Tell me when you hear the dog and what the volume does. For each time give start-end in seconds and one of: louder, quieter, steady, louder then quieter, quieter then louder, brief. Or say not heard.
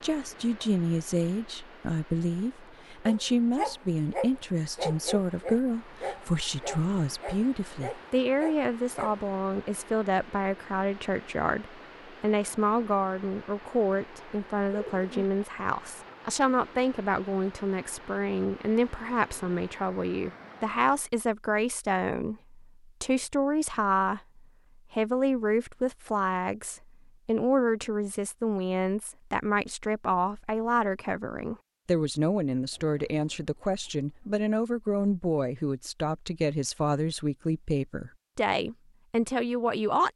3.0-9.2 quieter.